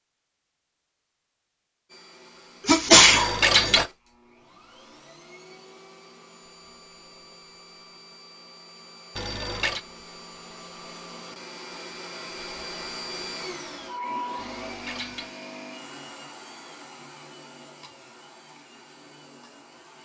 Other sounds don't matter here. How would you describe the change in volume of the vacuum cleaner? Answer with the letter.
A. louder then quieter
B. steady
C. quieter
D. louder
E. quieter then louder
A.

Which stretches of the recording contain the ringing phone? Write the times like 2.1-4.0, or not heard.
3.0-3.9, 9.2-9.8, 14.3-15.3.